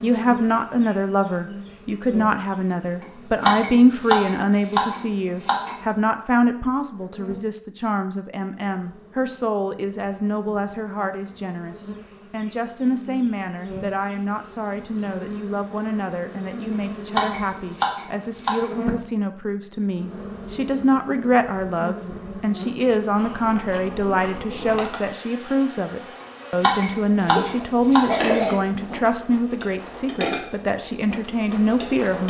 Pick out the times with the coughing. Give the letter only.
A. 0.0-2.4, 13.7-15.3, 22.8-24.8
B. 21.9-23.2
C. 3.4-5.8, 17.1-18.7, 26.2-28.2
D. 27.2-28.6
D.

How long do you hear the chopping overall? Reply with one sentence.
The chopping can be heard for 6 seconds in total.